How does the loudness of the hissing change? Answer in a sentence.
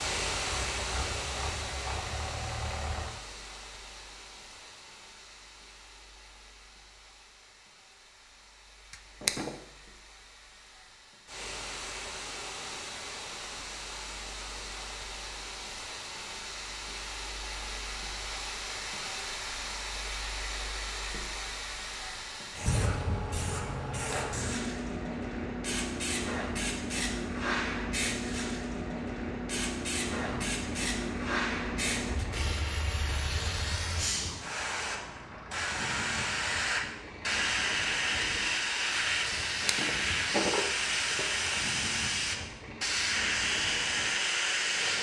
The loudness of the hissing goes up.